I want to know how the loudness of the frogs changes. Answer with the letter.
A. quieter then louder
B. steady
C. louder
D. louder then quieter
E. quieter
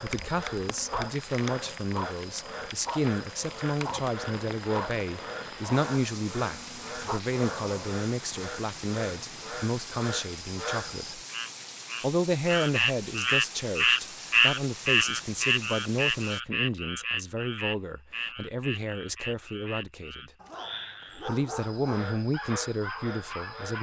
D.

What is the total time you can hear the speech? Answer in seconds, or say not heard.
22 s.